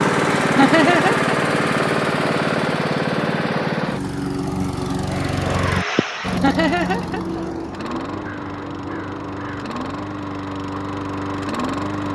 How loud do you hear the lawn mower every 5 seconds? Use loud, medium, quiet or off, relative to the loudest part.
loud, medium, medium.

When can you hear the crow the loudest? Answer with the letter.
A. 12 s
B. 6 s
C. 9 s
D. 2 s
B.